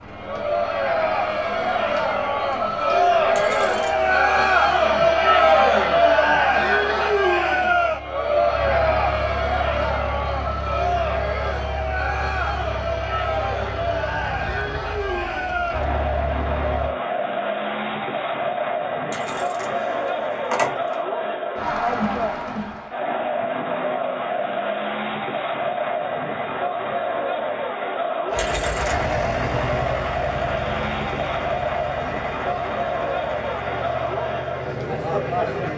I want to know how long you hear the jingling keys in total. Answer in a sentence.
You can hear the jingling keys for 3 seconds altogether.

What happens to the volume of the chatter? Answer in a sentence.
The loudness of the chatter goes down.